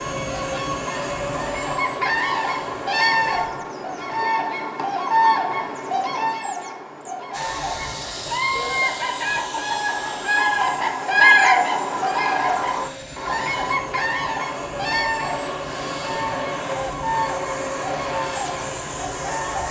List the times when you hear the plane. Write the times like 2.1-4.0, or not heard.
0.0-3.5, 7.3-19.6.